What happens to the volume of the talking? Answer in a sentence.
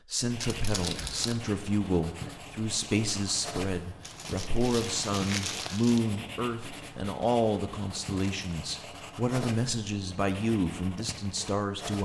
The volume of the talking stays about the same.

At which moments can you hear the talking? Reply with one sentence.
The talking can be heard from 0.1 to 12.0 s.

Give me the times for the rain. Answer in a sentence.
You can't hear the rain here.